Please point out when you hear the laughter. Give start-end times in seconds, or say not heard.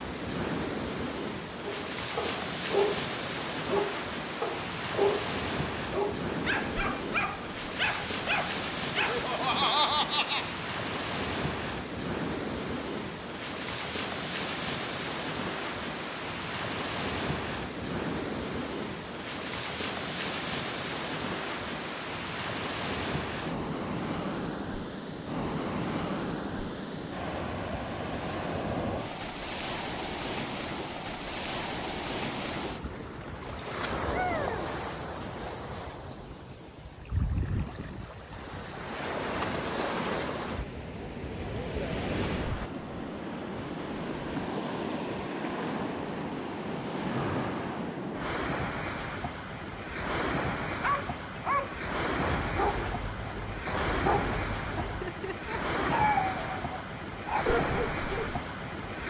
8.9-10.6, 54.8-56.0.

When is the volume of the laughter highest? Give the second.
10 s.